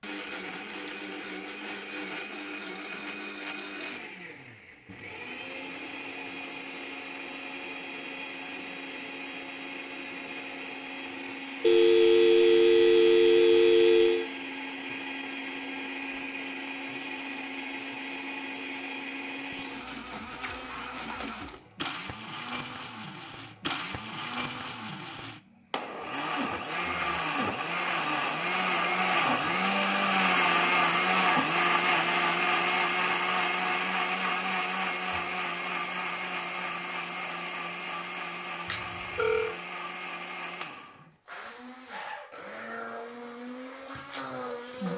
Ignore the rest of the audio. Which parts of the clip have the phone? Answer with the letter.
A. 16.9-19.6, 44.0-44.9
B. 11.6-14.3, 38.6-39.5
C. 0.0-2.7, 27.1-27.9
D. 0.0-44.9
B.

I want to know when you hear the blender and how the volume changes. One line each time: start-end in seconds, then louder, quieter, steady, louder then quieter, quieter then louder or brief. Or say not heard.
0.0-44.9 louder then quieter.